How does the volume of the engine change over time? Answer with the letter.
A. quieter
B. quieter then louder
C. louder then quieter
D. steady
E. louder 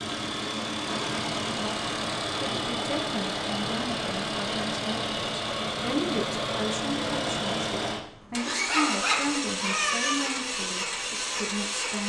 D.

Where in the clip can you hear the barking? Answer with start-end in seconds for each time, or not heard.
8.7-10.2.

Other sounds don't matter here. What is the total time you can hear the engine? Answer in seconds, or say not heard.
12 s.